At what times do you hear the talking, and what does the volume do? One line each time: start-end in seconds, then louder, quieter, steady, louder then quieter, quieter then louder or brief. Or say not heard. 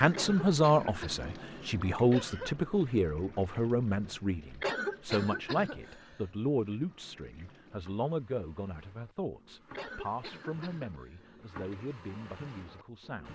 0.0-13.3 quieter.